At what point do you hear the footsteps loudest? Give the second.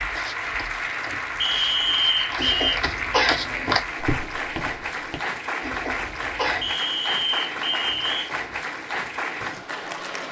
4 s.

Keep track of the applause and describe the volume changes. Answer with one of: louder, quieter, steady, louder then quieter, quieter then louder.
steady.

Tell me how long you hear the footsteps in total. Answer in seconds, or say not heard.
5 s.